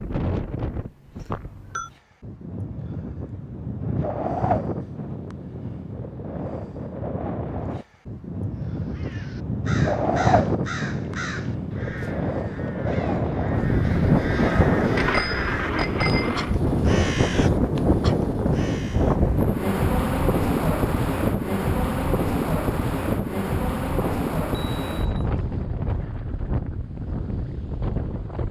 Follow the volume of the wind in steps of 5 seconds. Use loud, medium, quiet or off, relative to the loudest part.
medium, medium, loud, loud, loud, medium.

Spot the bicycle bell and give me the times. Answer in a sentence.
You can hear the bicycle bell from 1.3 to 1.9 s, from 14.9 to 16.6 s and from 24.0 to 25.2 s.